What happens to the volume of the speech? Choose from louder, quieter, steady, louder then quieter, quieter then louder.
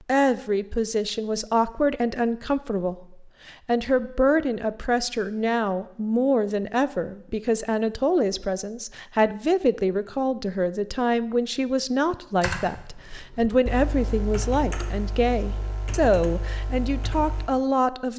steady.